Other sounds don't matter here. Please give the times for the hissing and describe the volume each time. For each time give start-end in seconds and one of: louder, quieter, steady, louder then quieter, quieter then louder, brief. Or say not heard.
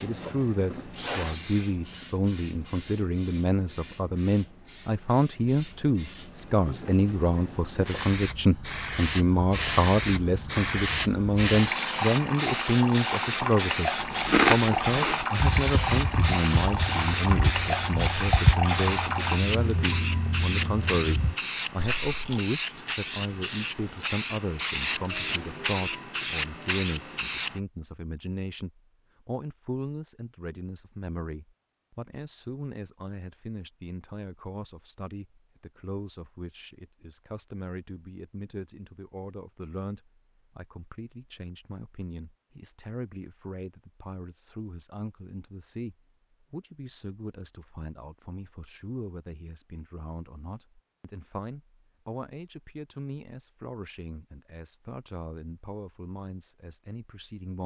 0.0-27.6 louder.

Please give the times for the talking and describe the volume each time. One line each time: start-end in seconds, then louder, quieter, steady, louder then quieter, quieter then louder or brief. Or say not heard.
0.0-57.6 quieter.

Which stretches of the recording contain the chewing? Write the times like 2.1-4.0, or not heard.
14.0-22.4.